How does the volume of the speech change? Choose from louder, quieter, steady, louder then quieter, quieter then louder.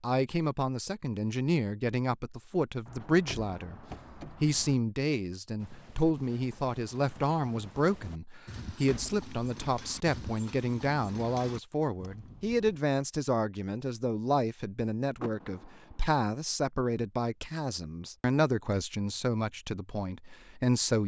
steady.